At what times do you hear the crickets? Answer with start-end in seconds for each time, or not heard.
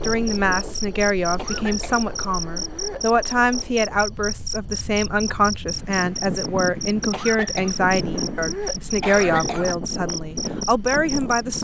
0.0-11.5.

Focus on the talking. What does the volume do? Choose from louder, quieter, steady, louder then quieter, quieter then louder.
steady.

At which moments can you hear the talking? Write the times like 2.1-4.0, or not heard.
0.0-11.5.